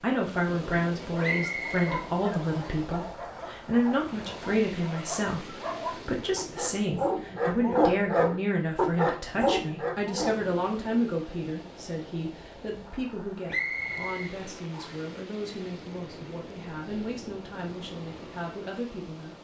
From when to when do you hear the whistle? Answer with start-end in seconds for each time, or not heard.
1.2-2.8, 13.4-15.1.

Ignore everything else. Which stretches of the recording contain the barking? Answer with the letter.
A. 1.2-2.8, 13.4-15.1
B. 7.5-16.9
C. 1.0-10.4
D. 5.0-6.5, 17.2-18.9
C.